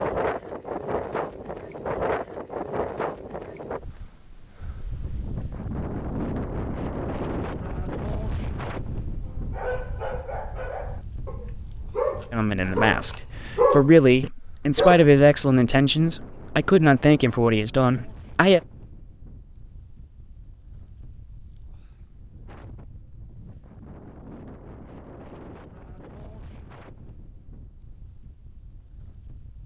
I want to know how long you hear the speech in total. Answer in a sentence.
The speech can be heard for 6 seconds in total.